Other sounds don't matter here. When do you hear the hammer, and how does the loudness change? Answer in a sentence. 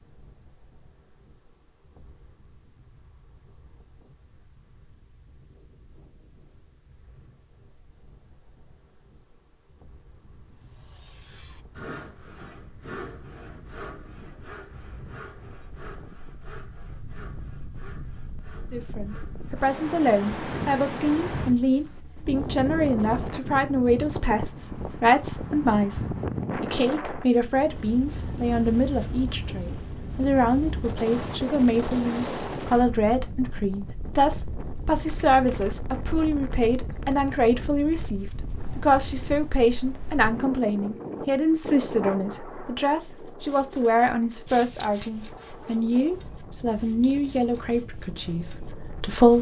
You can't hear the hammer here.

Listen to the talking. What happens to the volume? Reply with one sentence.
The loudness of the talking stays about the same.